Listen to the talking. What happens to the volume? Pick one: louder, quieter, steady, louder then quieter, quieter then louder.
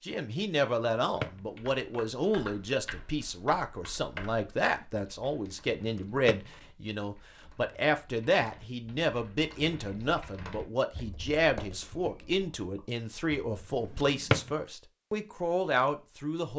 steady.